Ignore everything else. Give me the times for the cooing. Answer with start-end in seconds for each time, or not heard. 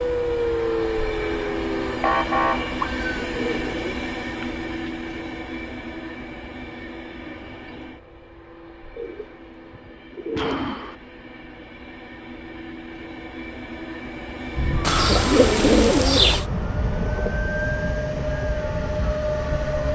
3.3-4.9, 8.9-10.9, 14.8-16.4.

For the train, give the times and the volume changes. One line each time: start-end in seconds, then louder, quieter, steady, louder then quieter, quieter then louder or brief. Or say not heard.
0.0-19.9 quieter then louder.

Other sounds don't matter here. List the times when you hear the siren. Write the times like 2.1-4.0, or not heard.
0.0-3.0, 14.5-19.9.